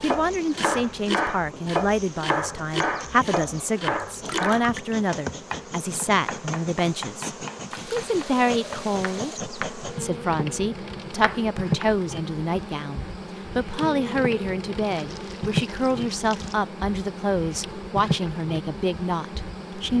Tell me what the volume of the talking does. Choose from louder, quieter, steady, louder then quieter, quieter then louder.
steady.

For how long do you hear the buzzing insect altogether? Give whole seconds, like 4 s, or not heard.
20 s.